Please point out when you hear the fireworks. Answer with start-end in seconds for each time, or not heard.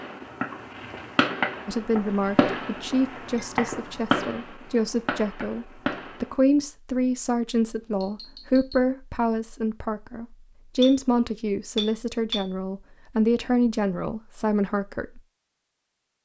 0.0-6.3.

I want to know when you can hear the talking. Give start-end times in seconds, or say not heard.
1.6-15.2.